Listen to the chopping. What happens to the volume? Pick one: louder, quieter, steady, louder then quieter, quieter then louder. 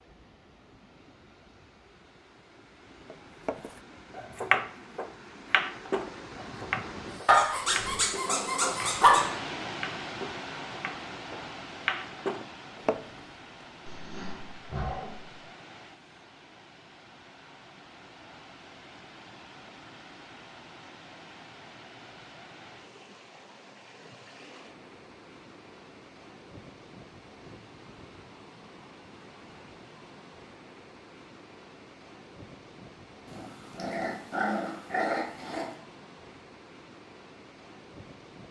quieter then louder.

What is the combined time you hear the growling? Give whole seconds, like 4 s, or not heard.
6 s.